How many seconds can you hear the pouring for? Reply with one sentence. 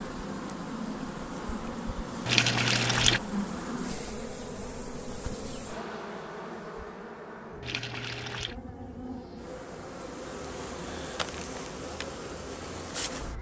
You can hear the pouring for 2 seconds altogether.